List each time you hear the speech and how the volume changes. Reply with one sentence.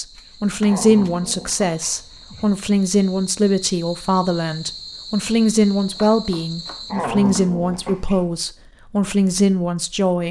The speech can be heard from 0.0 to 10.2 s, at a steady volume.